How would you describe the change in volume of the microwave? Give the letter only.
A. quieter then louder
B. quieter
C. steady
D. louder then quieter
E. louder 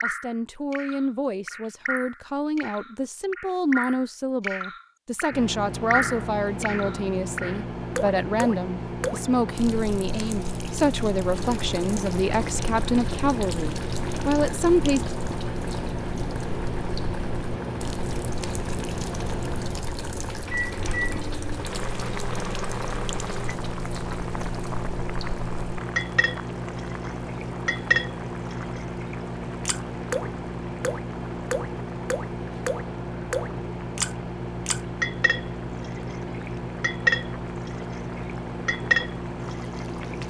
C.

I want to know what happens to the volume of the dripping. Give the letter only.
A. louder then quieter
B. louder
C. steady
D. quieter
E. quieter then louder
E.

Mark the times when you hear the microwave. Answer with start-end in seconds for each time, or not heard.
5.3-40.2.